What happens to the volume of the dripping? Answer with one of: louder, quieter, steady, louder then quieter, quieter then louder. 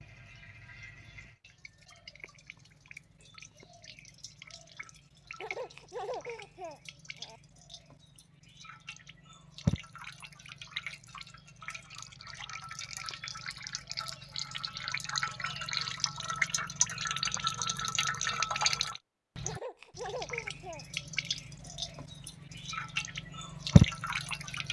louder.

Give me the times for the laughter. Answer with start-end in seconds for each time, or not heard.
5.4-7.4, 19.4-20.9.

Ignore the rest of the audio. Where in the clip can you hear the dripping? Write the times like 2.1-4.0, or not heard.
0.0-24.6.